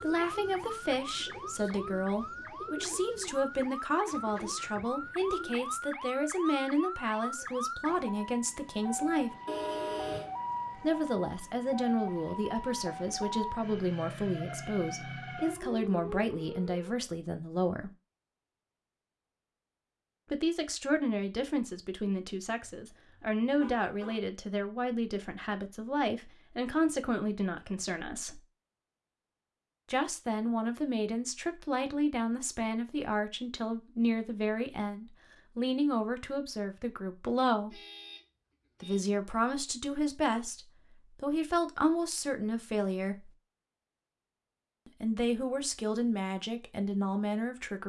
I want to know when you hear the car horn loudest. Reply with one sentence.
The volume of the car horn peaks at 10 seconds.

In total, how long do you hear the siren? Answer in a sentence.
The siren can be heard for 17 seconds in total.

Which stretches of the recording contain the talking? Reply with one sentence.
The talking can be heard from 0.0 to 9.3 s, from 10.8 to 17.9 s, from 20.3 to 28.4 s, from 29.9 to 37.8 s, from 38.8 to 43.4 s and from 44.9 to 47.8 s.